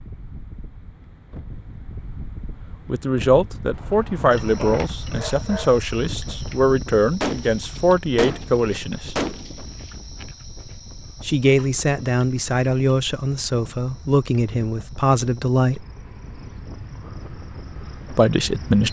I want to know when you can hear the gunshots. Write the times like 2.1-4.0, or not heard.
7.2-9.9.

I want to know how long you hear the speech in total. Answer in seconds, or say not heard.
12 s.